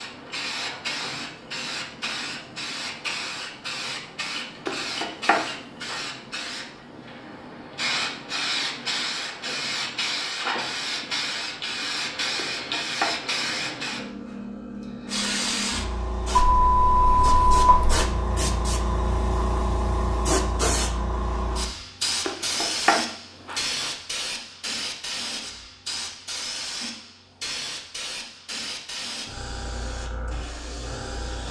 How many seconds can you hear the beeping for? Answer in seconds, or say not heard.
2 s.